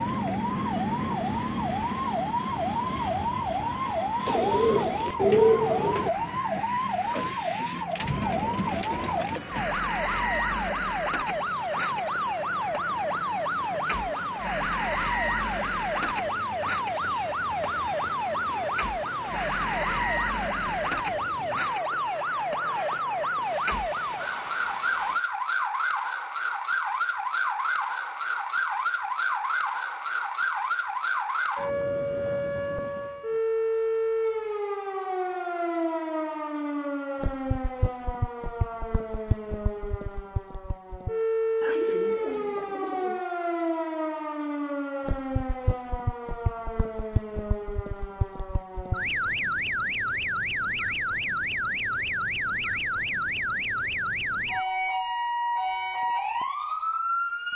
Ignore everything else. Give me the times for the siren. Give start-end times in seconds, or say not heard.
0.0-57.5.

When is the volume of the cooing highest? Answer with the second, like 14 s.
5 s.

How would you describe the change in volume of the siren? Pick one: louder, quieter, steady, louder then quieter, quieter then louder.
steady.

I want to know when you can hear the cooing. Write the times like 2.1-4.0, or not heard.
4.2-6.1, 41.6-43.2.